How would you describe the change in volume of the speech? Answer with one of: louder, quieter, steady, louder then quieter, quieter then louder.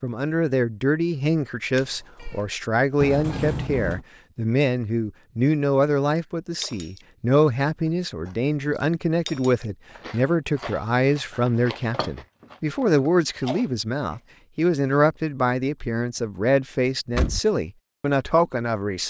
steady.